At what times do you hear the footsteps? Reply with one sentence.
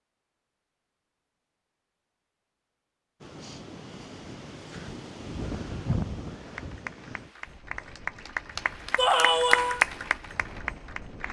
The footsteps can't be heard in this clip.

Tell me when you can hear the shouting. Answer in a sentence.
The shouting can be heard from 8.9 to 9.8 s.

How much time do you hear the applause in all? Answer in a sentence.
The applause can be heard for 5 seconds in total.